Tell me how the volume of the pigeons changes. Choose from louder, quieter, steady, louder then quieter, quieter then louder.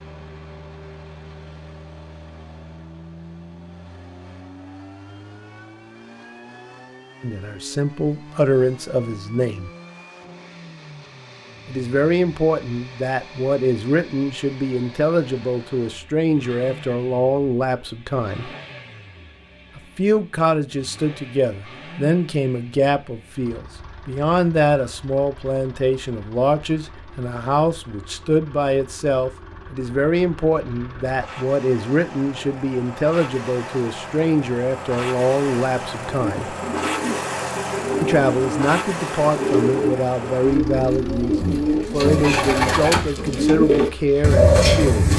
louder.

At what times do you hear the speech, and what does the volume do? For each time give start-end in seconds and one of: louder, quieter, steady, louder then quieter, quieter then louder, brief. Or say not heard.
7.2-9.7 brief
11.7-18.5 steady
19.8-36.5 steady
38.0-45.1 steady.